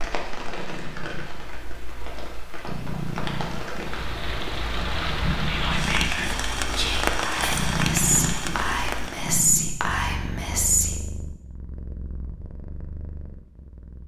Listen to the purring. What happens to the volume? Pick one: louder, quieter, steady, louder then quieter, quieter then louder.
louder then quieter.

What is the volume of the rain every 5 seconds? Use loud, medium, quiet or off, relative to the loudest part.
medium, loud, off.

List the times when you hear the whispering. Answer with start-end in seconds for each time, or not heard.
5.5-10.9.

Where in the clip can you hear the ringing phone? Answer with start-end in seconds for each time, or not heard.
not heard.